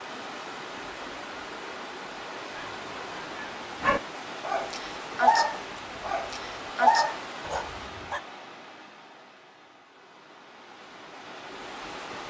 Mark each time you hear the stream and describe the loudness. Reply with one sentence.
You can hear the stream from 0.0 to 12.2 s, getting quieter.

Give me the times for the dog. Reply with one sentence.
You can hear the dog from 2.5 to 8.2 s.